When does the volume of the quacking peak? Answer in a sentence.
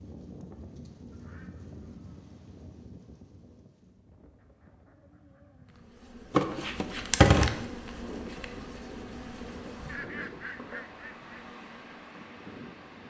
The volume of the quacking peaks at 10 seconds.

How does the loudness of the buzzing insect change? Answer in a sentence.
The volume of the buzzing insect goes down.